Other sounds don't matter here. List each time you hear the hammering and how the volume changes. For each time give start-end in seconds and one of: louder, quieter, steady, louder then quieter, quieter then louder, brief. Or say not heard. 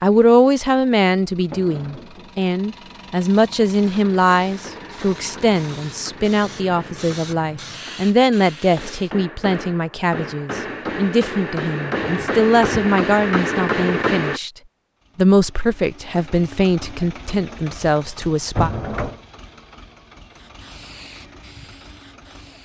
3.9-14.4 louder.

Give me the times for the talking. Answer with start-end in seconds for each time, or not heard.
0.0-14.5, 15.2-18.7.